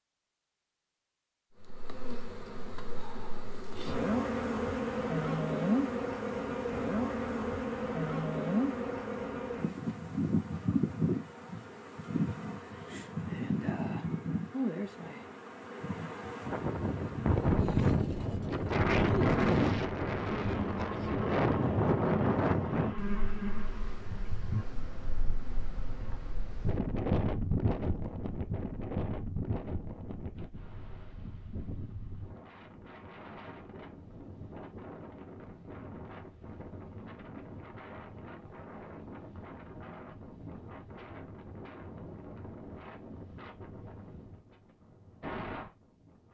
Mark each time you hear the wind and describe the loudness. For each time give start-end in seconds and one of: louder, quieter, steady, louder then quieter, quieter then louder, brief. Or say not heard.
16.4-46.2 quieter.